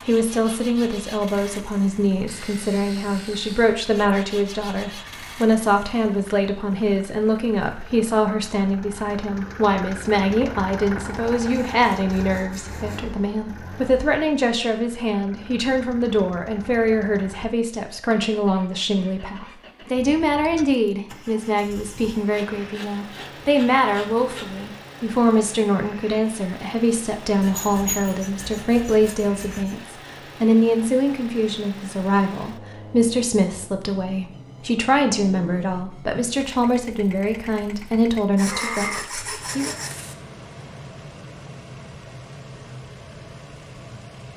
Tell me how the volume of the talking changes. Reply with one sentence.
The loudness of the talking stays about the same.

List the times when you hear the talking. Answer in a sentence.
You can hear the talking from 0.1 to 39.8 s.